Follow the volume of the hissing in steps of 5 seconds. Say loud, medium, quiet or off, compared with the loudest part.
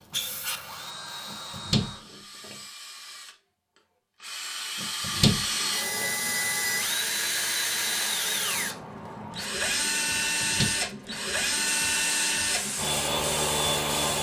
loud, off, loud.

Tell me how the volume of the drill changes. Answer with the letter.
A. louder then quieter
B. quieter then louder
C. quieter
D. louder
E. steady
D.